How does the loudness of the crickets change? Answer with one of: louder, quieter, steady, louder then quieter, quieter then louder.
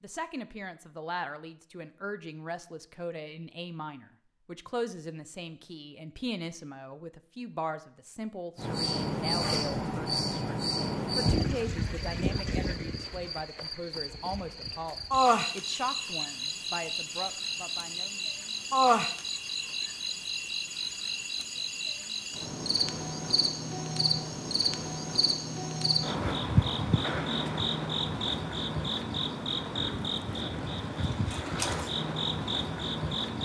steady.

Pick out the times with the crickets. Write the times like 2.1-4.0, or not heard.
8.6-33.4.